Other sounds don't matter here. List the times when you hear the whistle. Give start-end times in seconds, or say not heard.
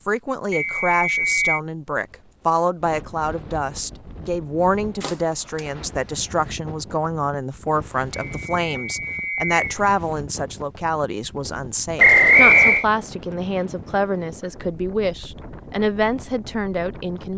0.5-1.6, 8.2-9.7, 11.9-12.8.